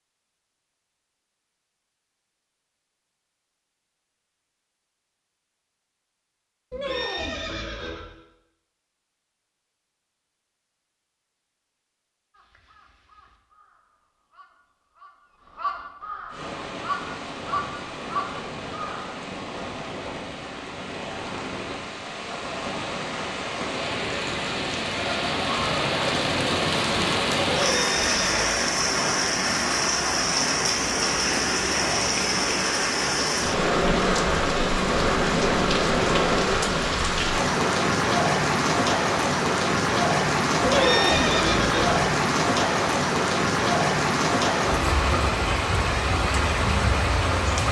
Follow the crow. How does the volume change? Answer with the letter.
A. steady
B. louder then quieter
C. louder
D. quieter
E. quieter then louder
C.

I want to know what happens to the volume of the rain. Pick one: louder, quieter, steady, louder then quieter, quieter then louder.
louder.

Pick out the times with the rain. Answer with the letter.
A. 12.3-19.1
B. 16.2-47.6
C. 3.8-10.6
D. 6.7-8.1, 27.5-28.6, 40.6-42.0
B.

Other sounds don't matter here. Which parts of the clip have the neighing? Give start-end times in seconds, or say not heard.
6.7-8.1, 27.5-28.6, 40.6-42.0.